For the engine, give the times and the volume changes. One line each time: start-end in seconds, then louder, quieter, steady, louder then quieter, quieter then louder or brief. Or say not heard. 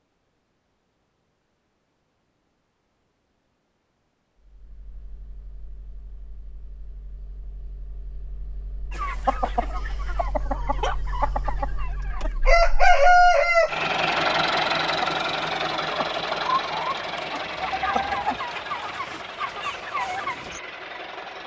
4.3-21.4 louder then quieter.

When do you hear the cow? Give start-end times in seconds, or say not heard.
not heard.